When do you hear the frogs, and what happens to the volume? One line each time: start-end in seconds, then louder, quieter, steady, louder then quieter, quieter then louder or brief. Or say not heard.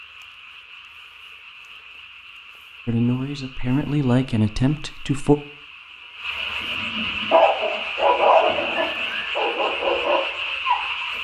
0.0-11.1 louder.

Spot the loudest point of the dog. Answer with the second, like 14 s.
8 s.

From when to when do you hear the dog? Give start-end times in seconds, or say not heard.
6.6-11.1.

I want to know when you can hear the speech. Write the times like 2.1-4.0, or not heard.
2.9-5.3.